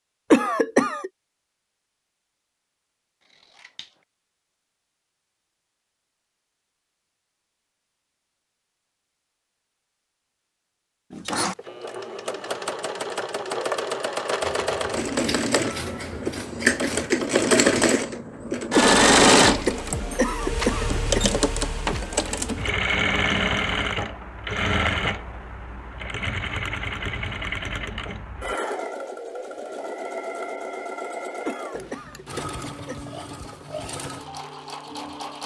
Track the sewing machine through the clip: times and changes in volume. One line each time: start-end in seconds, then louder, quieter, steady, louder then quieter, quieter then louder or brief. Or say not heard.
11.1-35.4 louder then quieter.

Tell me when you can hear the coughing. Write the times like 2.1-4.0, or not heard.
0.3-1.1, 18.8-21.2, 31.4-33.0.